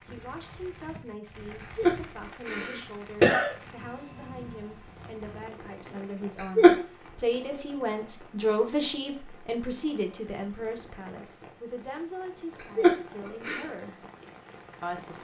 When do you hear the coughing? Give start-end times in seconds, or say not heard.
1.8-3.5, 6.3-6.8, 12.6-13.7.